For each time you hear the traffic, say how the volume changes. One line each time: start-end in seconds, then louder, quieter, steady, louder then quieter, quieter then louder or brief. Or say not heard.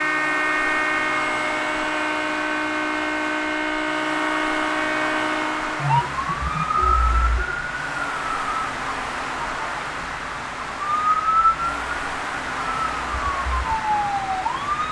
0.0-14.8 steady.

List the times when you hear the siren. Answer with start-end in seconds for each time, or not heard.
0.0-14.8.